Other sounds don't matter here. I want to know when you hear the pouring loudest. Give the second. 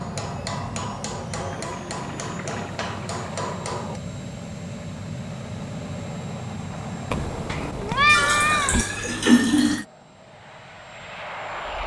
9 s.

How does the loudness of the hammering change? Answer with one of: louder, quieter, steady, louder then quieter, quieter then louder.
steady.